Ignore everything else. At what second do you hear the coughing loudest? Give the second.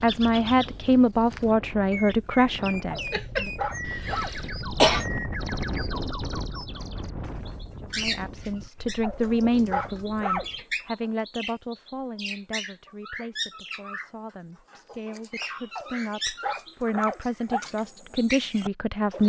5 s.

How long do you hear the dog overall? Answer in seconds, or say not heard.
5 s.